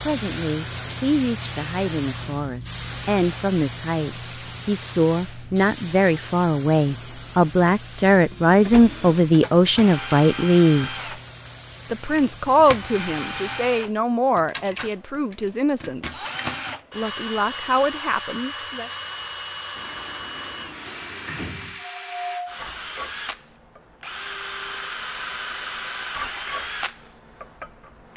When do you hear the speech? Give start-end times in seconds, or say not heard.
0.1-11.1, 11.9-16.2, 16.9-18.9.